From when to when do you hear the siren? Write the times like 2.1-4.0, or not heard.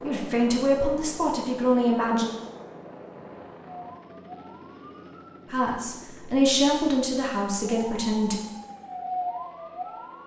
3.6-5.4, 7.7-10.2.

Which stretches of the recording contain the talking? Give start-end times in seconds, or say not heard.
0.0-2.3, 5.5-8.4.